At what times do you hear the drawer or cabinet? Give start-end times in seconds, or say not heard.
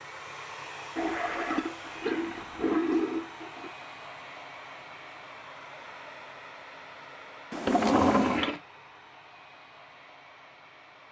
7.5-8.5.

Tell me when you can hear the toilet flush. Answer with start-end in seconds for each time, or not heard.
0.9-3.7, 7.8-8.6.